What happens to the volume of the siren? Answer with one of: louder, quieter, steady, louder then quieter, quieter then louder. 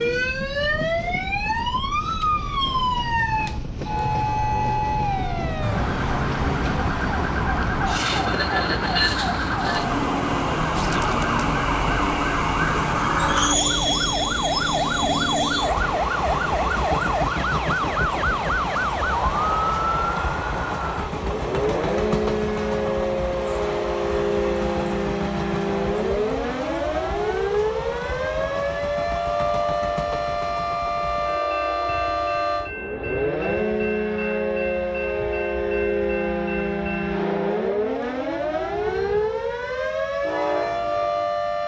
steady.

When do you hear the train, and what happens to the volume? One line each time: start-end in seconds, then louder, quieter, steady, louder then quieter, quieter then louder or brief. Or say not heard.
0.0-41.6 louder then quieter.